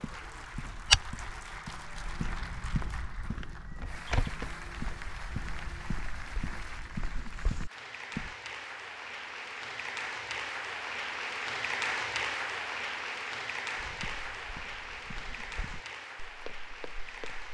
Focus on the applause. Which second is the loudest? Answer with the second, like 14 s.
12 s.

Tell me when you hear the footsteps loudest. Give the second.
1 s.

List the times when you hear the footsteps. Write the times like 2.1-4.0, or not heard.
0.0-8.3, 13.8-17.4.